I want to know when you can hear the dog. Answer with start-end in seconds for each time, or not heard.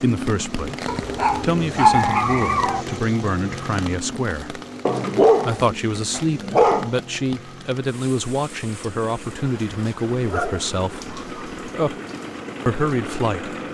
0.8-2.9, 4.8-6.9, 9.9-11.7.